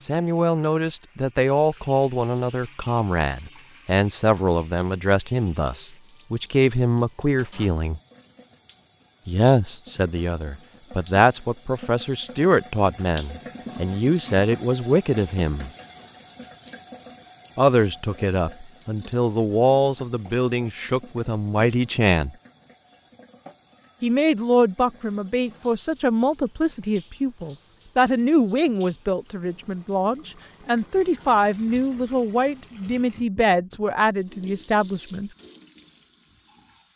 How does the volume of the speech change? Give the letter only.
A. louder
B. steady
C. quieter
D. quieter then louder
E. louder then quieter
B.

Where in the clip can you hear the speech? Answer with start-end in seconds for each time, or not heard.
0.1-8.0, 9.2-15.7, 17.6-22.3, 24.0-35.3.